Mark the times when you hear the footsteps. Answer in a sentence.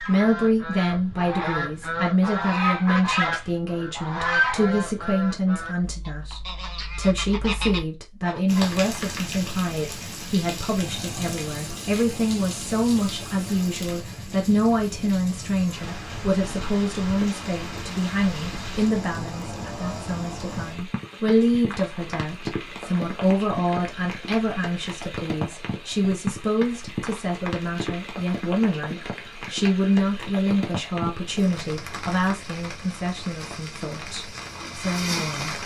You can't hear the footsteps here.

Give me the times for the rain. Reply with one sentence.
You can hear the rain from 8.4 to 35.6 s.